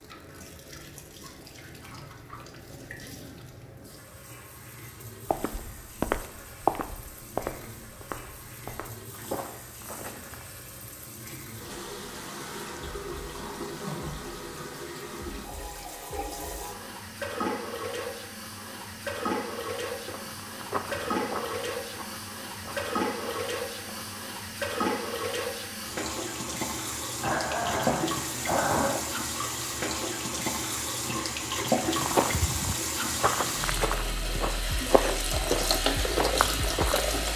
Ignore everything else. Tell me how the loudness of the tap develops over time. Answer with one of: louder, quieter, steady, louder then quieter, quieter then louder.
louder.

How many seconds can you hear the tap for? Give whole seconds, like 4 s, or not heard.
37 s.